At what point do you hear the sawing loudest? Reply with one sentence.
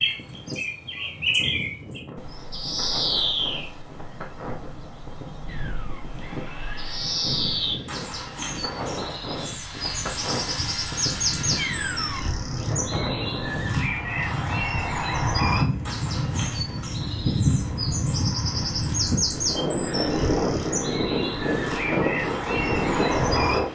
The volume of the sawing peaks at 12 seconds.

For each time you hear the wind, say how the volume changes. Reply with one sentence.
You can hear the wind from 0.0 to 23.7 s, getting louder.